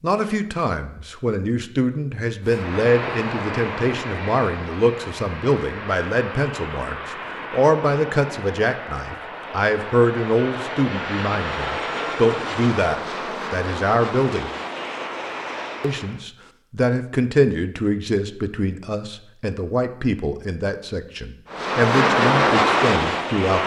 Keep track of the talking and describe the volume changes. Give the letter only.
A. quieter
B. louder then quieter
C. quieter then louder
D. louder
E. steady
E.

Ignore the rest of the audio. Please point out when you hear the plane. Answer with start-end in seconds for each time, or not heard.
2.5-16.2, 21.5-23.6.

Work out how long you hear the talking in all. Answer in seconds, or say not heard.
22 s.